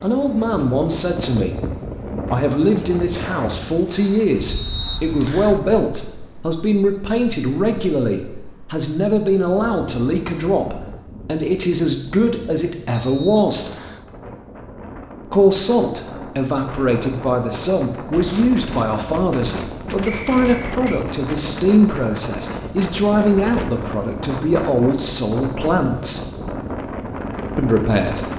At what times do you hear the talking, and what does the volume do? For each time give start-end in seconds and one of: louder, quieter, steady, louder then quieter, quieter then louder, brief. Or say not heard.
0.0-13.7 steady
15.2-26.2 steady
27.6-28.3 brief.